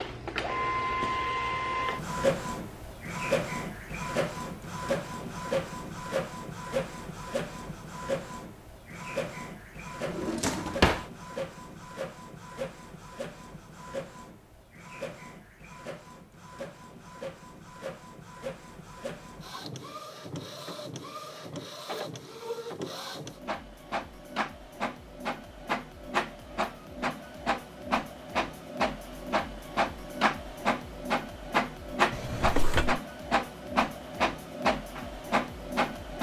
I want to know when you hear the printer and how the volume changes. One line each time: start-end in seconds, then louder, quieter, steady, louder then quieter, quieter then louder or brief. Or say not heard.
0.0-36.1 quieter then louder.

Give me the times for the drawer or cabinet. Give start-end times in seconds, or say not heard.
10.1-11.1, 32.1-33.0.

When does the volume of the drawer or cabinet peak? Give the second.
11 s.